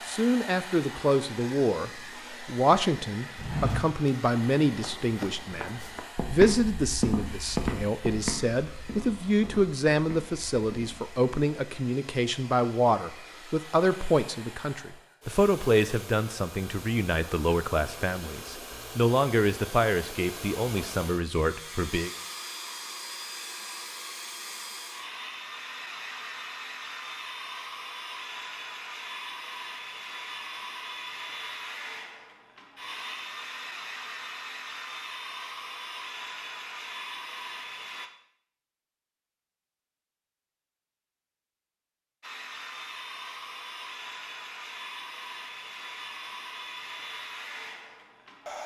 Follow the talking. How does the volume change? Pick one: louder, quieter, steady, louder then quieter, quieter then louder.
steady.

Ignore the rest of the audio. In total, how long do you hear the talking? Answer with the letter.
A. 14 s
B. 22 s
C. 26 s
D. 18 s
B.